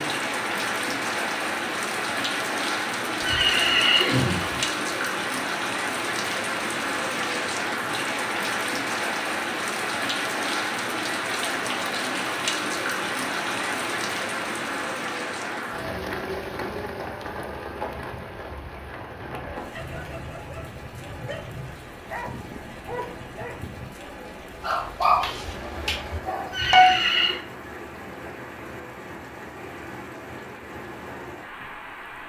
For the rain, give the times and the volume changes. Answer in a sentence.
You can hear the rain from 0.0 to 32.2 s, getting quieter.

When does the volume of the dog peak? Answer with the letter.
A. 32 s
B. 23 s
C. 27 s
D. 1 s
C.